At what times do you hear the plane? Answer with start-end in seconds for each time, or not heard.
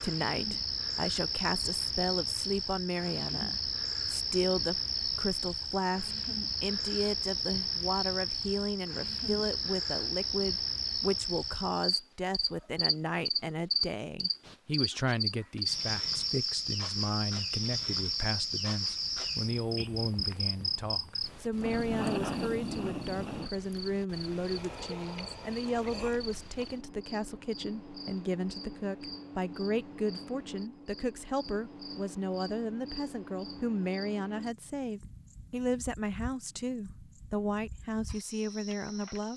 not heard.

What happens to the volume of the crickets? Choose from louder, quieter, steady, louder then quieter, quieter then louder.
quieter.